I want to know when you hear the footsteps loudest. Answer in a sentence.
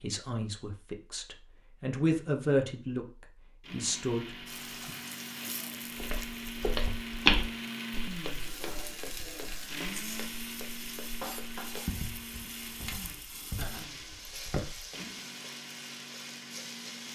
The loudest moment of the footsteps is at 7 seconds.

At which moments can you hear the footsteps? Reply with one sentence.
The footsteps can be heard from 6.0 to 14.9 s.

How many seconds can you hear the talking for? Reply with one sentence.
The talking can be heard for 5 seconds in total.